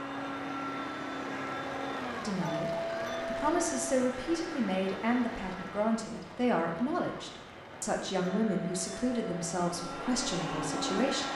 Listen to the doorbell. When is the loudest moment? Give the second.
3 s.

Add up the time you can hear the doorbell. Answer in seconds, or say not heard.
3 s.